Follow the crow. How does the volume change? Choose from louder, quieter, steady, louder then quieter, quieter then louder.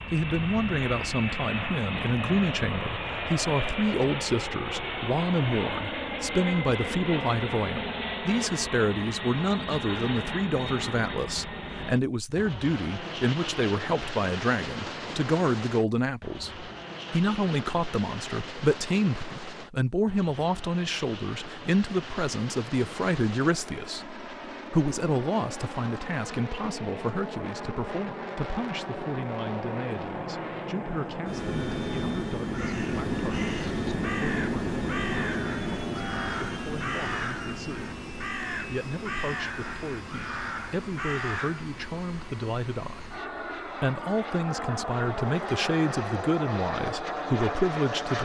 steady.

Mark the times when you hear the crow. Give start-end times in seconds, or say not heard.
32.5-41.7.